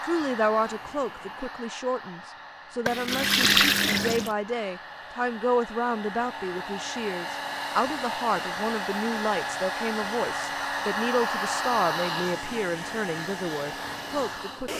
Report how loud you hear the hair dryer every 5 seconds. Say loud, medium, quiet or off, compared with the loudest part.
medium, loud, loud.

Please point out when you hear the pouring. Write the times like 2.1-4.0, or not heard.
2.9-4.3.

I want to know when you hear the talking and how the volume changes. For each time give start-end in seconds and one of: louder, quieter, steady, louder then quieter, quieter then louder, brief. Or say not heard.
0.0-14.7 steady.